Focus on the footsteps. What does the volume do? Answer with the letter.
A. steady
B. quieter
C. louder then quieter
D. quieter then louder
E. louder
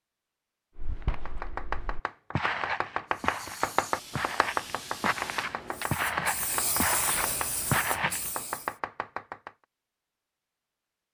E.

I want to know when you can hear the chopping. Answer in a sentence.
You can hear the chopping from 1.1 to 9.5 s.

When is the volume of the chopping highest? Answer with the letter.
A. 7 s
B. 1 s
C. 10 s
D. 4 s
D.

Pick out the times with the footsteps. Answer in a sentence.
The footsteps can be heard from 0.8 to 8.3 s.